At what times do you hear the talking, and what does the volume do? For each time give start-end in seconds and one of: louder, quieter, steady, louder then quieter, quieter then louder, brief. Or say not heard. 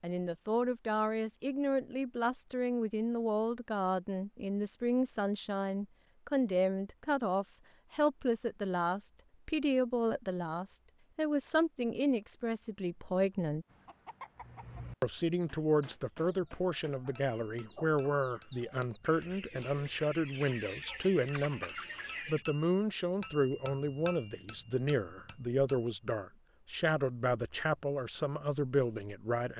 0.0-13.7 steady
15.0-29.5 steady.